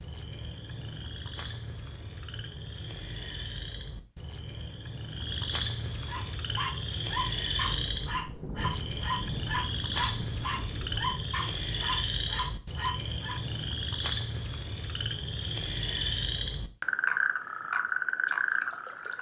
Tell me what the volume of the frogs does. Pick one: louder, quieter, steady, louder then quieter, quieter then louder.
louder.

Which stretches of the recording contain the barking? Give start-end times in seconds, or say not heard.
6.0-13.4.